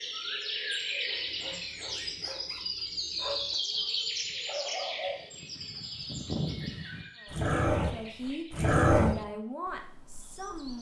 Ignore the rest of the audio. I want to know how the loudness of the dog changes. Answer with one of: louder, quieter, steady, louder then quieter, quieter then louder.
louder.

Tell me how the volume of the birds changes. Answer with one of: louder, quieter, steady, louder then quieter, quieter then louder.
quieter.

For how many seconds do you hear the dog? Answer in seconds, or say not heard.
8 s.